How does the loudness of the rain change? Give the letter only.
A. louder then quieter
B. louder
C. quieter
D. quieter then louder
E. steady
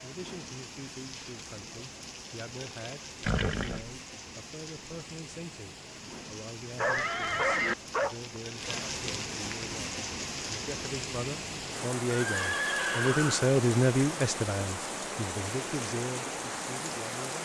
B.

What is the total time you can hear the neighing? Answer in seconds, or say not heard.
3 s.